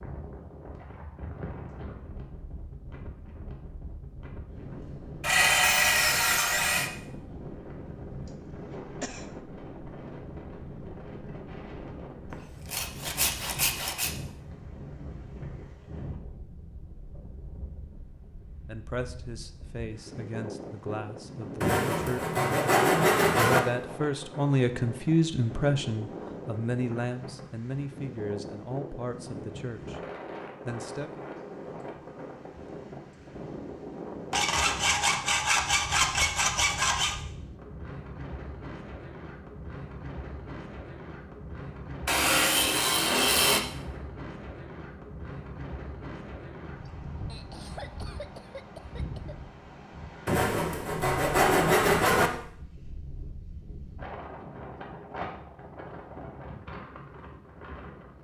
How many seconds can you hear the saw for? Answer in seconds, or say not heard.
12 s.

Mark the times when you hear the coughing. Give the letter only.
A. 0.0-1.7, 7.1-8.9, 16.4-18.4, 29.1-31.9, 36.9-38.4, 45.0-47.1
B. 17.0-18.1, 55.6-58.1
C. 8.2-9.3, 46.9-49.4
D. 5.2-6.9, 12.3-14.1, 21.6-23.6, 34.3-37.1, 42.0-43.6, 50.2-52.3
C.